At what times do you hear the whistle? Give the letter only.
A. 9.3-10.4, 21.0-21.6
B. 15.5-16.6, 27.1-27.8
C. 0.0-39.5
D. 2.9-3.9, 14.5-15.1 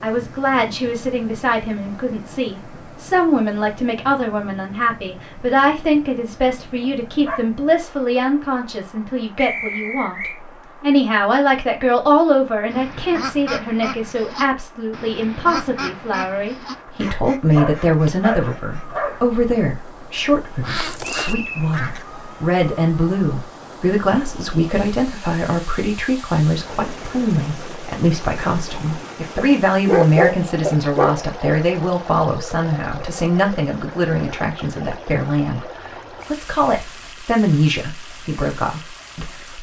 A.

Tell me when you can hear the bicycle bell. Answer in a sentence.
You can't hear the bicycle bell here.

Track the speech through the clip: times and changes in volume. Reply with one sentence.
The speech can be heard from 0.0 to 39.5 s, at a steady volume.